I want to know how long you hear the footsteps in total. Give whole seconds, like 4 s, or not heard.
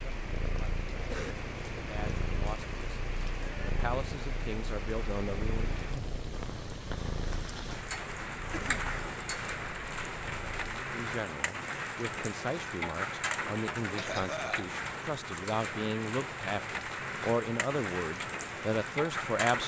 not heard.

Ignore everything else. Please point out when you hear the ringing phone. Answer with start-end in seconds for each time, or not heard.
not heard.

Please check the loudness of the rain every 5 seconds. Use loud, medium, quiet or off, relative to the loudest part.
medium, loud, loud, loud.